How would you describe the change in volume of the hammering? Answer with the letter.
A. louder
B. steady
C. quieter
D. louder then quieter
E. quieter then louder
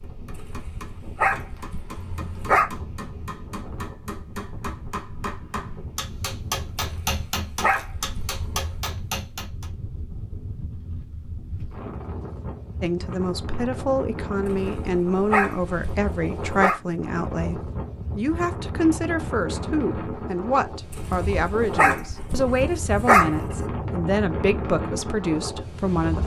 A.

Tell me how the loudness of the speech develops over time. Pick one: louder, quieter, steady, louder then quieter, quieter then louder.
steady.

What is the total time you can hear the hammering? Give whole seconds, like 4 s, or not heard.
10 s.